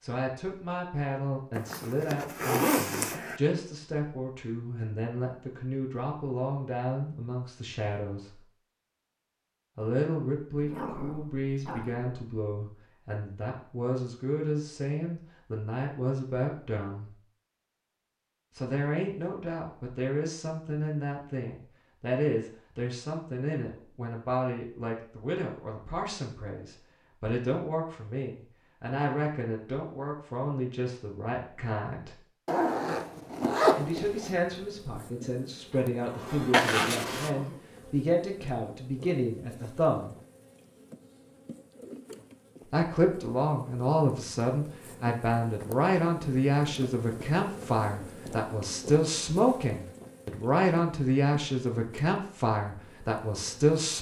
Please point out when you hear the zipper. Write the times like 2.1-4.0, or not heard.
1.6-3.4, 32.5-34.4, 36.5-37.3.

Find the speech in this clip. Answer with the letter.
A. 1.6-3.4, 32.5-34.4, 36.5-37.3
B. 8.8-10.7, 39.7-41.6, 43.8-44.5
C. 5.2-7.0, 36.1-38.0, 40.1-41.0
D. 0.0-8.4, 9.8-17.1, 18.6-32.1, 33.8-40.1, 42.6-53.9
D.